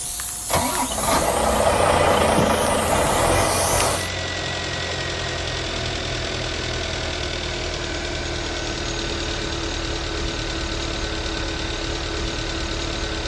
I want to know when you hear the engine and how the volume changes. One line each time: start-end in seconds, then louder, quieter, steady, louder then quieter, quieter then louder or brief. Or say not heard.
0.0-13.2 quieter.